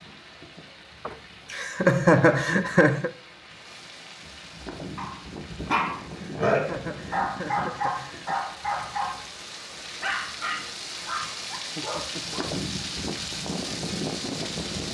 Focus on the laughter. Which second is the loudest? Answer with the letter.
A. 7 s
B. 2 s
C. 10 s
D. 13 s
B.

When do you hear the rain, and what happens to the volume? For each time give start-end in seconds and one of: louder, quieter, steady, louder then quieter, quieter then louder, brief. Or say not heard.
0.0-14.9 louder.